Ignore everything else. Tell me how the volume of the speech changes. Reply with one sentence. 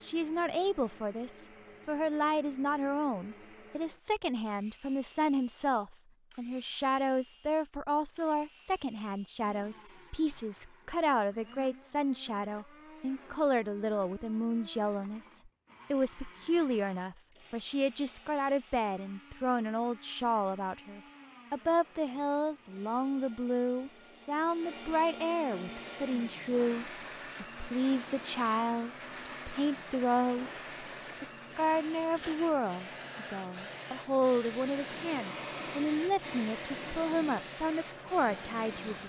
The loudness of the speech stays about the same.